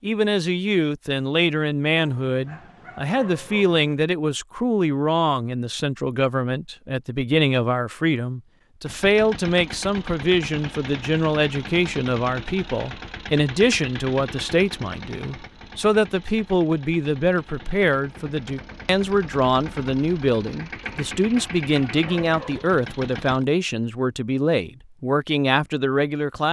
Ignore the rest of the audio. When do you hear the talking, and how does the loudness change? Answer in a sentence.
The talking can be heard from 0.0 to 26.4 s, at a steady volume.